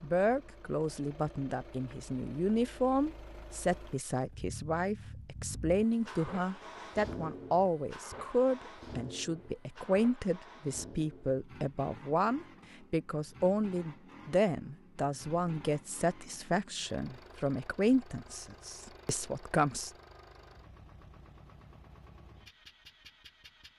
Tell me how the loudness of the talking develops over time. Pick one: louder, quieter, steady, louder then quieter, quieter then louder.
steady.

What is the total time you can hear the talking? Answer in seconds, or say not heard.
20 s.